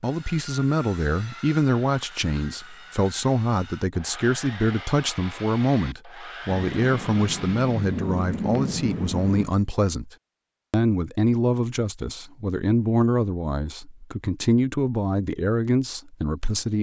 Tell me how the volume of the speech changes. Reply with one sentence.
The loudness of the speech stays about the same.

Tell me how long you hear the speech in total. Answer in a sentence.
You can hear the speech for 17 seconds altogether.